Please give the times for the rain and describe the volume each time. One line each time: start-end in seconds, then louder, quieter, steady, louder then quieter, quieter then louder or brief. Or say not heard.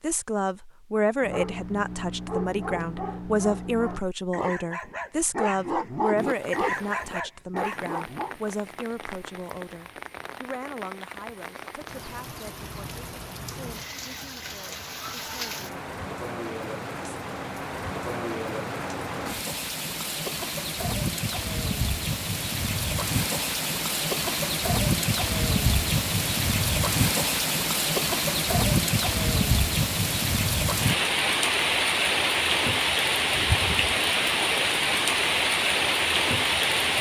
6.2-36.9 louder.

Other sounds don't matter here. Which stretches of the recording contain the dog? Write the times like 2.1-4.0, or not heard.
1.2-8.3.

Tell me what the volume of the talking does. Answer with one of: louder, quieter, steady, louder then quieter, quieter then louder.
quieter.